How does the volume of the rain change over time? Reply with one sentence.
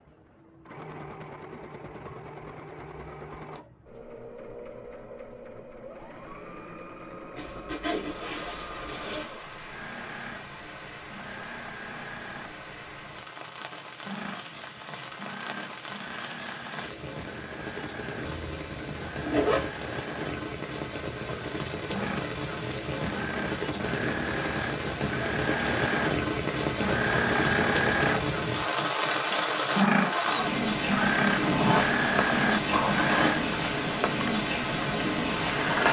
The loudness of the rain goes up.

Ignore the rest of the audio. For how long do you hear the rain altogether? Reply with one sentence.
The rain can be heard for 28 seconds in total.